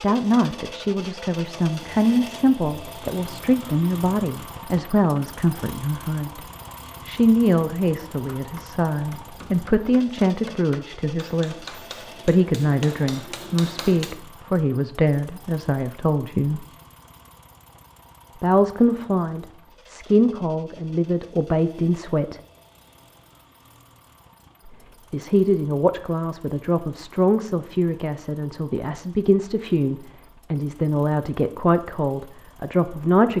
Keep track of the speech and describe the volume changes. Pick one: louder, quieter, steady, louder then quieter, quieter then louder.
steady.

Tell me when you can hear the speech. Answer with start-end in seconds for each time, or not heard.
0.0-16.6, 18.4-22.4, 24.6-33.3.